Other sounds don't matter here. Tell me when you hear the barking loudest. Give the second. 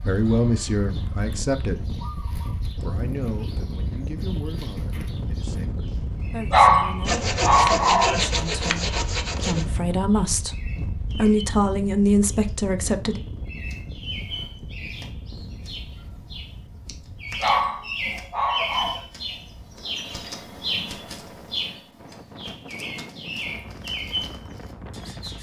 7 s.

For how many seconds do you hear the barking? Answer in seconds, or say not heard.
3 s.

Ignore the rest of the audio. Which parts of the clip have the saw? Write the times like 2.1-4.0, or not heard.
7.0-9.7.